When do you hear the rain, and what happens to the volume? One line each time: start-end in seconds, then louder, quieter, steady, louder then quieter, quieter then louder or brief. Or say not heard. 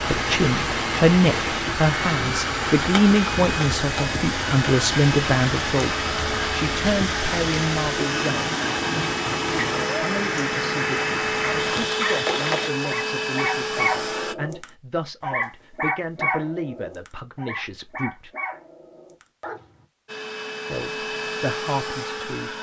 0.0-12.7 steady.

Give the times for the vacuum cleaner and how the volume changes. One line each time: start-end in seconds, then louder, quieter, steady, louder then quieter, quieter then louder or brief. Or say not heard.
0.0-14.3 steady
20.1-22.5 brief.